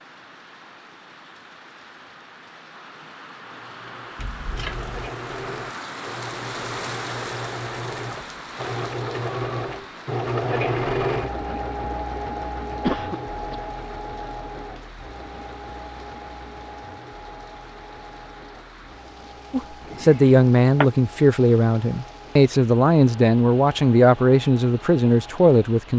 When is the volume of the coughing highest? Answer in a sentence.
The loudest moment of the coughing is at 13 seconds.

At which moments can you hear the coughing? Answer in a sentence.
The coughing can be heard from 4.2 to 5.1 s, from 12.8 to 13.6 s and from 19.9 to 20.9 s.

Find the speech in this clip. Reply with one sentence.
You can hear the speech from 19.5 to 25.9 s.